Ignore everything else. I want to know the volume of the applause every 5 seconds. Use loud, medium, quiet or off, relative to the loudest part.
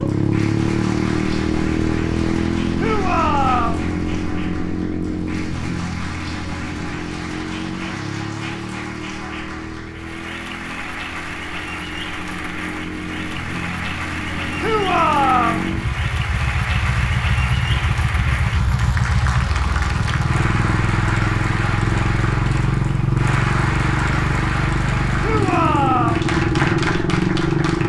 medium, medium, loud, loud, loud, loud.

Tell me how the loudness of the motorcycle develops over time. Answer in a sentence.
The loudness of the motorcycle goes down, then up.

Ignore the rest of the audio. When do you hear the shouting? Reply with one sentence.
The shouting can be heard from 2.8 to 3.9 s, from 14.6 to 15.7 s and from 25.2 to 26.2 s.